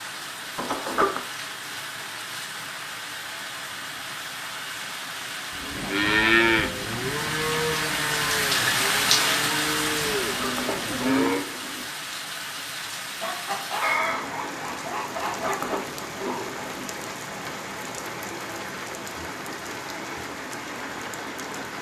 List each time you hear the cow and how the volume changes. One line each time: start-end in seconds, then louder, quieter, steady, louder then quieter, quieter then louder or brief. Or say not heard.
5.5-11.4 quieter.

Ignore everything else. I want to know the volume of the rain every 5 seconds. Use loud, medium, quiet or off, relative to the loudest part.
medium, loud, medium, medium, medium.